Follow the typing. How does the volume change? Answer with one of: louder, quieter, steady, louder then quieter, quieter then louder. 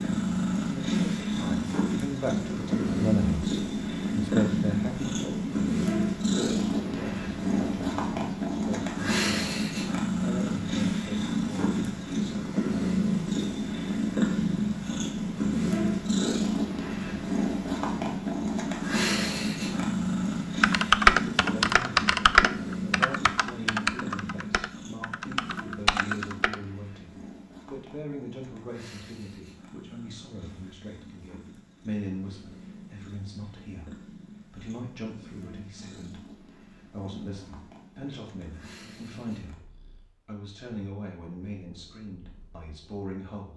quieter then louder.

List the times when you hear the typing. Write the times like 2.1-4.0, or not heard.
20.6-26.6.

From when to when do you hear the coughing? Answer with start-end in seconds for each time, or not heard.
not heard.